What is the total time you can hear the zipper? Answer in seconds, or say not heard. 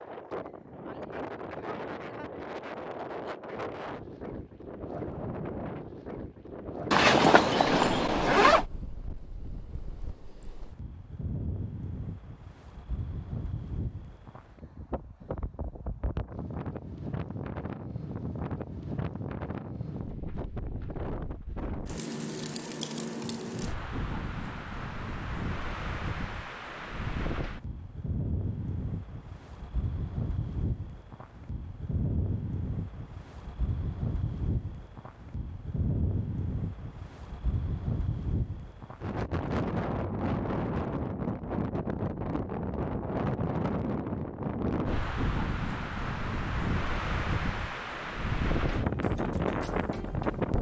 2 s.